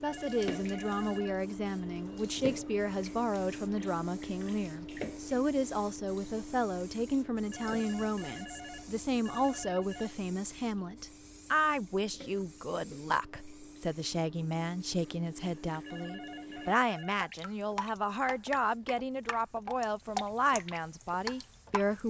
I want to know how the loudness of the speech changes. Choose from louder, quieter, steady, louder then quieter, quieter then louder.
steady.